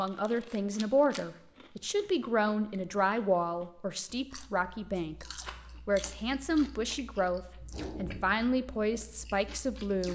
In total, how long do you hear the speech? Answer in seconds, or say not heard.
10 s.